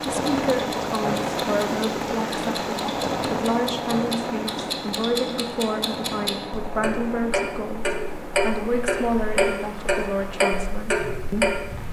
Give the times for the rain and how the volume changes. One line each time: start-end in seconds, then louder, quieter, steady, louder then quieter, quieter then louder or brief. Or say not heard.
0.0-11.8 quieter.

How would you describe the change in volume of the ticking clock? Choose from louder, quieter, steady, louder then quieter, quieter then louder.
louder.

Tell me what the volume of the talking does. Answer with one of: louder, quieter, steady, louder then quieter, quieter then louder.
steady.